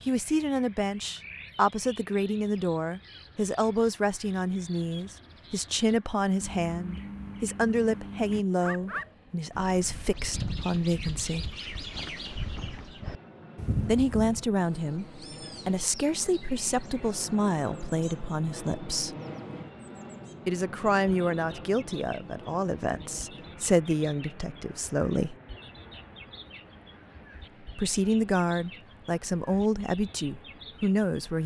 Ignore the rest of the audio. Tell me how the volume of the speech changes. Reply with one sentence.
The volume of the speech stays about the same.